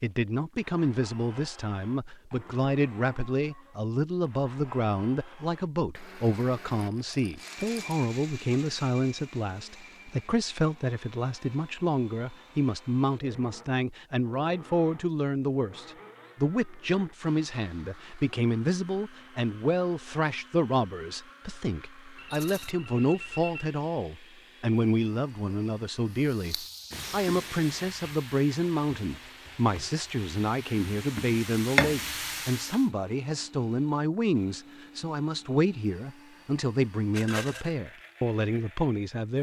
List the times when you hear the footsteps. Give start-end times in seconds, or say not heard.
not heard.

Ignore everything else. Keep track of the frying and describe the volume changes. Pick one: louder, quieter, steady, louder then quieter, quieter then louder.
quieter then louder.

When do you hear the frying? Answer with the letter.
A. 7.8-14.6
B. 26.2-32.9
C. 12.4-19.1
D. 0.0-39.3
B.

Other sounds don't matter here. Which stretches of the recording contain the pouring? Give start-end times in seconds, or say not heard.
not heard.